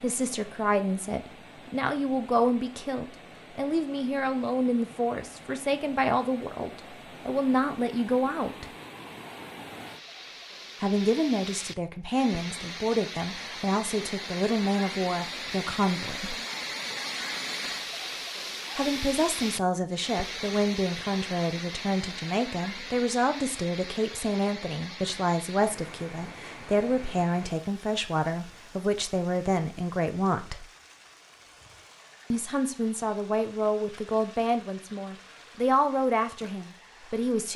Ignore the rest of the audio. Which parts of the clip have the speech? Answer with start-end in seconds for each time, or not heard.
0.0-8.7, 10.8-16.4, 18.8-30.6, 32.3-37.5.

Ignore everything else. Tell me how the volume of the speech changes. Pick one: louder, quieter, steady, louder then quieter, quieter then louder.
steady.